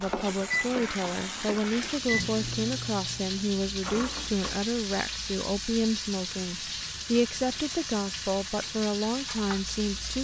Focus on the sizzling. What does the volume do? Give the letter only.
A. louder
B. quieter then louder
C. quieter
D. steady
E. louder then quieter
D.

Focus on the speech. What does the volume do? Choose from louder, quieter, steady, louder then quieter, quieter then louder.
steady.